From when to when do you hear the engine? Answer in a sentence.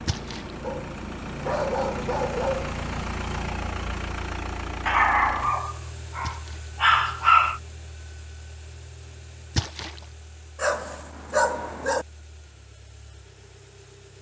You can hear the engine from 0.0 to 14.1 s.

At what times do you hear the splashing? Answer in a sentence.
The splashing can be heard from 0.1 to 0.6 s, from 6.2 to 6.7 s and from 9.6 to 10.0 s.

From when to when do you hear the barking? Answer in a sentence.
You can hear the barking from 0.6 to 2.8 s, from 4.8 to 7.6 s and from 10.6 to 12.1 s.